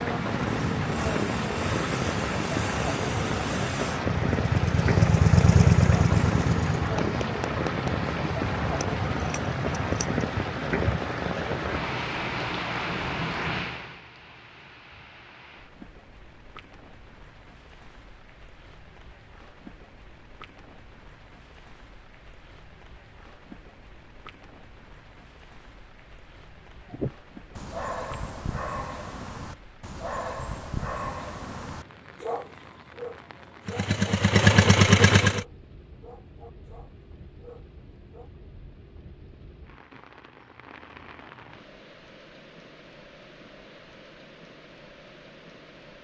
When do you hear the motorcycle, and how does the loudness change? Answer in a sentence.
The motorcycle can be heard from 0.2 to 10.2 s, getting louder then quieter; and briefly from 33.6 to 35.5 s.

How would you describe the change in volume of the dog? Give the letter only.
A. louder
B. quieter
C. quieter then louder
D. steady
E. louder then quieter
B.